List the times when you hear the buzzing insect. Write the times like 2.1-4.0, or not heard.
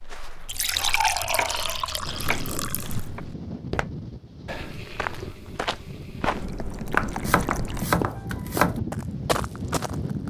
not heard.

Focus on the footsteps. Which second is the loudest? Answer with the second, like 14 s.
7 s.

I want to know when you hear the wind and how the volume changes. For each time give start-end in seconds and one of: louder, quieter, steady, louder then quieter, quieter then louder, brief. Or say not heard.
1.9-10.2 quieter then louder.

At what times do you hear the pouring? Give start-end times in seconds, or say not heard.
0.5-3.0, 6.2-7.9.